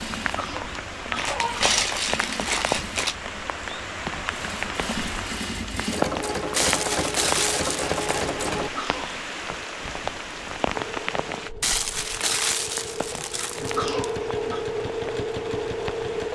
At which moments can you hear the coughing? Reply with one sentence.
You can hear the coughing from 0.2 to 1.7 s, from 8.6 to 9.2 s and from 13.6 to 14.7 s.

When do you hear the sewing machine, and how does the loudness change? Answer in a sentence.
The sewing machine can be heard from 0.0 to 8.7 s, getting louder; and from 10.7 to 16.3 s, getting louder.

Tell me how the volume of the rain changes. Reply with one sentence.
The loudness of the rain goes down.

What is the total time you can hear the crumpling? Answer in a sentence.
You can hear the crumpling for 6 seconds altogether.